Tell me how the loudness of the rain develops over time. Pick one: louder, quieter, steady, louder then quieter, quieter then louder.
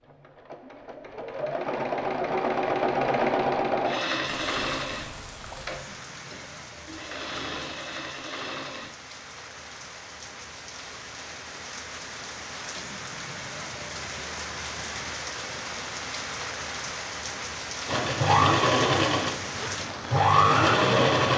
louder.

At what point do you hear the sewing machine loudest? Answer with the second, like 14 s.
21 s.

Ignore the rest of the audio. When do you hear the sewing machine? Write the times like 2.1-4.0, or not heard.
0.0-8.9, 17.9-21.3.